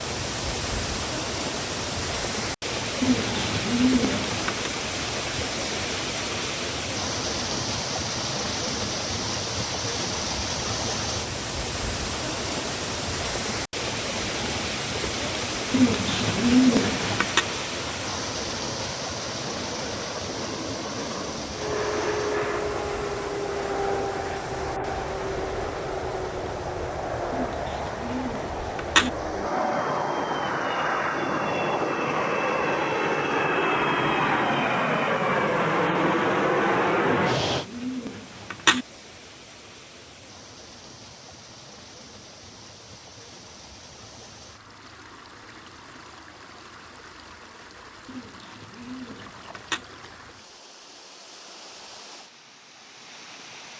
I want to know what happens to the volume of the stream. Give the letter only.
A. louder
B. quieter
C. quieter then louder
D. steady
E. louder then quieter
B.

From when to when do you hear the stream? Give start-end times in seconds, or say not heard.
0.0-53.7.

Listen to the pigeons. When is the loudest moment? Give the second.
17 s.